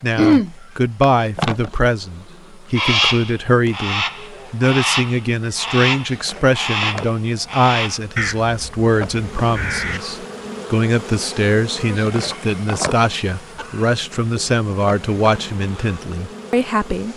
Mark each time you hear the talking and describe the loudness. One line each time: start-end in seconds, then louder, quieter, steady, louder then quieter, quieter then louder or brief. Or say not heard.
0.0-17.1 steady.